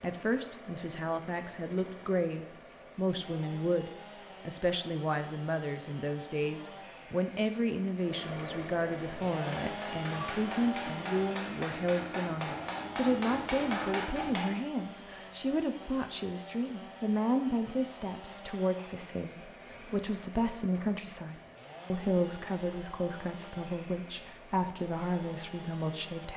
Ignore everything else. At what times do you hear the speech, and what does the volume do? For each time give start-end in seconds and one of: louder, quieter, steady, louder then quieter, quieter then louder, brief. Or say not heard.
0.0-26.3 steady.